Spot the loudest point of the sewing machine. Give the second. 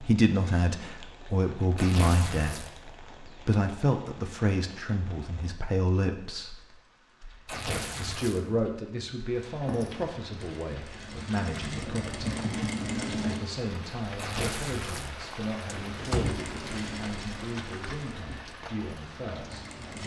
13 s.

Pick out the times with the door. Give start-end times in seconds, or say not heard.
16.0-16.9.